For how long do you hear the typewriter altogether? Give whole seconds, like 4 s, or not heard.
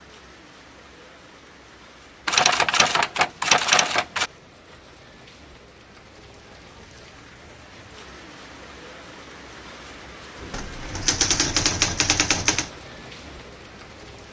4 s.